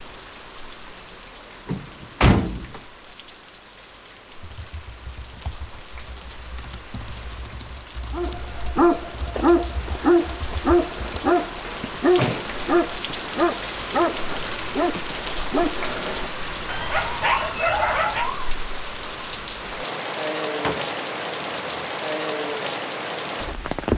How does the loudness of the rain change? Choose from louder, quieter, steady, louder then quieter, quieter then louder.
louder.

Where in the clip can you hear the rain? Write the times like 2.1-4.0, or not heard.
0.0-23.9.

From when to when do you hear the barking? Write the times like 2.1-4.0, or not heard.
8.1-18.5.